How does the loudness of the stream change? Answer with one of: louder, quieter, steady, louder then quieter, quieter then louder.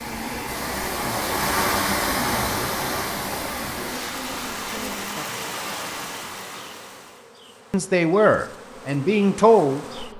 quieter.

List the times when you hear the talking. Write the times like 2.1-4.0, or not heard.
7.7-10.1.